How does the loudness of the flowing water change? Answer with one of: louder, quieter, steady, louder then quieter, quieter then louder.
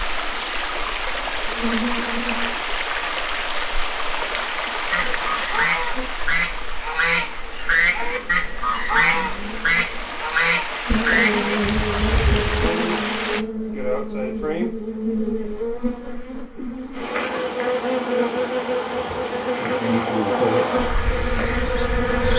quieter then louder.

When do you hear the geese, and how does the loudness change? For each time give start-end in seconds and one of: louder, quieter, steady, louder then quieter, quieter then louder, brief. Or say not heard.
4.9-12.7 steady.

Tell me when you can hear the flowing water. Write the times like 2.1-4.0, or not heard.
0.0-13.4.